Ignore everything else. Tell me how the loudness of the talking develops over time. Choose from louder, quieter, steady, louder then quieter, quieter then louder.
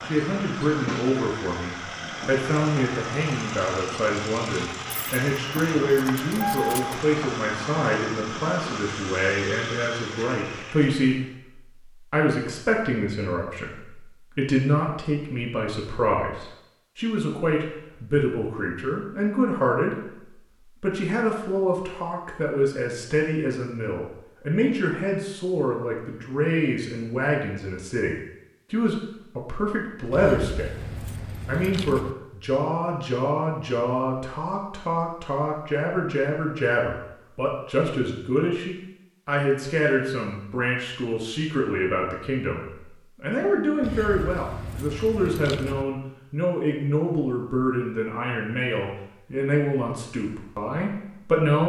steady.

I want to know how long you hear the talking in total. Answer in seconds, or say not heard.
50 s.